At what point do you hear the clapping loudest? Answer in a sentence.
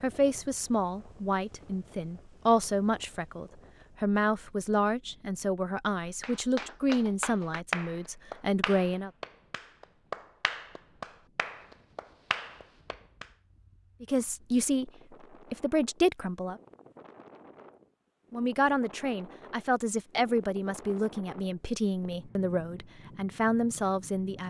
The volume of the clapping peaks at 8 seconds.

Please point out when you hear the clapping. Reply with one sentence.
The clapping can be heard from 6.2 to 13.2 s.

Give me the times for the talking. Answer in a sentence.
The talking can be heard from 0.0 to 9.1 s, from 14.0 to 14.9 s, from 15.5 to 16.6 s and from 18.3 to 24.4 s.